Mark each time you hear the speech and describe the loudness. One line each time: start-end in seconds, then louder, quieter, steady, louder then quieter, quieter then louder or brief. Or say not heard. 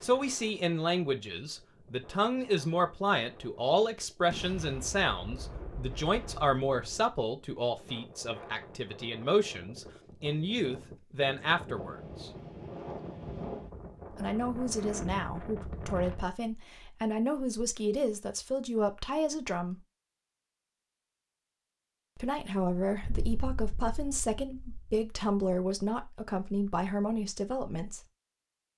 0.0-12.3 steady
14.2-19.8 steady
22.1-28.0 steady.